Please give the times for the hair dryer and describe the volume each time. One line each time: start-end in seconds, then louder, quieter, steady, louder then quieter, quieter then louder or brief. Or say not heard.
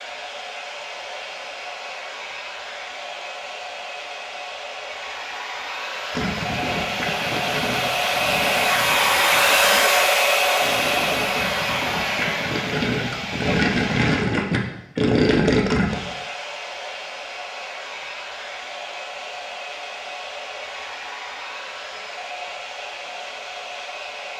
0.0-24.3 louder then quieter.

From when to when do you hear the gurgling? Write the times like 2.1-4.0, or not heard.
6.2-16.0.